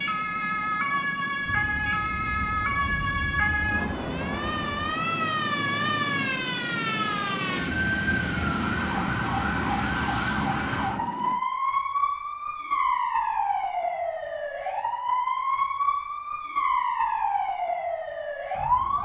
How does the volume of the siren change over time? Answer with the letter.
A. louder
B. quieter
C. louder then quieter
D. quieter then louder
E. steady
E.